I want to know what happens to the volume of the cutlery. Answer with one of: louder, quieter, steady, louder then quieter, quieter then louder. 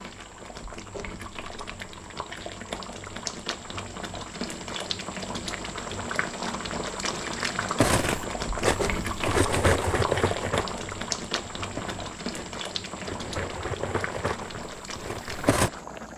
quieter then louder.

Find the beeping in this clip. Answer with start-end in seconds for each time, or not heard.
not heard.